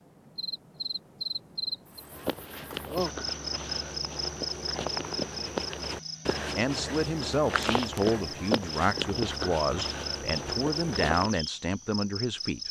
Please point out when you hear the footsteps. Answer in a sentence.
You can hear the footsteps from 1.9 to 11.4 s.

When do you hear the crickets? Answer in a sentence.
The crickets can be heard from 0.0 to 12.6 s.